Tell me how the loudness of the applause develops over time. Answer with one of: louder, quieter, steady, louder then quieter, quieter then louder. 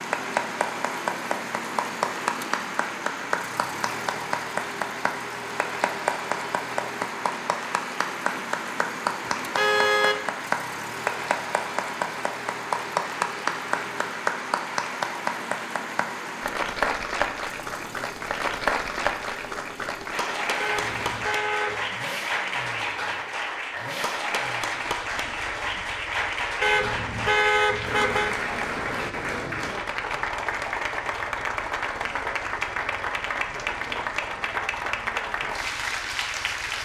steady.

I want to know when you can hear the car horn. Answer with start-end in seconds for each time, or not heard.
9.6-10.2, 20.6-21.9, 26.6-28.4.